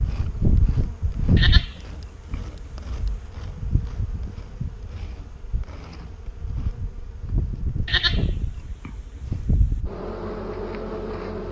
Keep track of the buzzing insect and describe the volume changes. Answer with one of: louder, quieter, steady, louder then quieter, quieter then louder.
quieter then louder.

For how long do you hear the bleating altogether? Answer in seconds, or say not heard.
4 s.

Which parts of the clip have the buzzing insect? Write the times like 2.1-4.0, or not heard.
0.0-11.4.